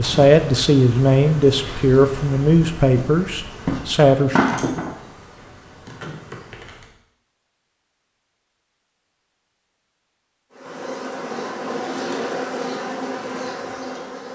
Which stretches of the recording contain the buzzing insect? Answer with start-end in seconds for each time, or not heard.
0.0-6.9, 10.5-14.3.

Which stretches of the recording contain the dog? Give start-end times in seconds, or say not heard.
not heard.